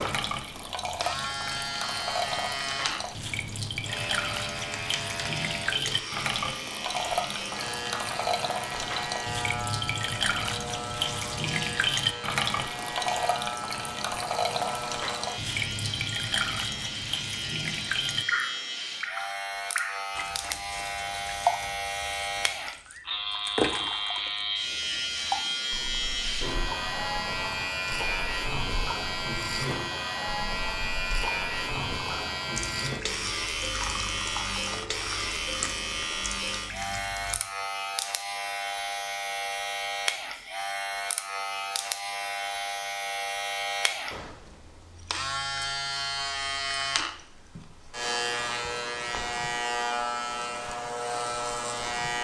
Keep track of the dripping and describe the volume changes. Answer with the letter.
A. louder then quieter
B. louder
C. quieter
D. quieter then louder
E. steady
C.